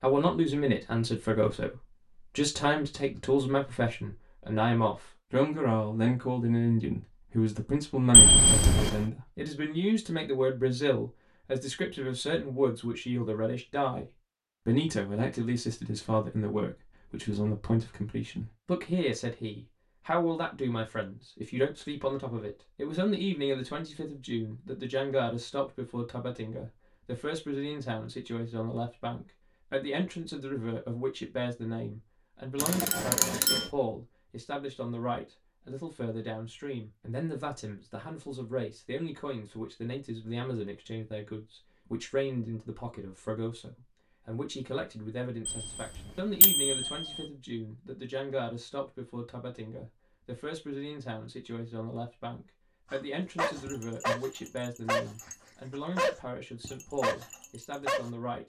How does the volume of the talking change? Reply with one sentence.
The volume of the talking goes down.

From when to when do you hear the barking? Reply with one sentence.
You can hear the barking from 52.9 to 55.4 s and from 56.0 to 58.1 s.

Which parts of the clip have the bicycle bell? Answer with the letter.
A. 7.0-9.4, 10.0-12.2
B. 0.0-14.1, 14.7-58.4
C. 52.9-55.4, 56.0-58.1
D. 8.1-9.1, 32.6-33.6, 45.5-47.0
D.